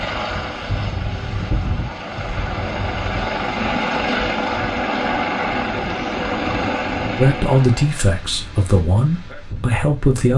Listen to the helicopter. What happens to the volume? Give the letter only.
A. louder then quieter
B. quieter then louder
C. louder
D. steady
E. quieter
C.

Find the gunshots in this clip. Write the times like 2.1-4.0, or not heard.
not heard.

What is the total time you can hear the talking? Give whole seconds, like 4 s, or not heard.
3 s.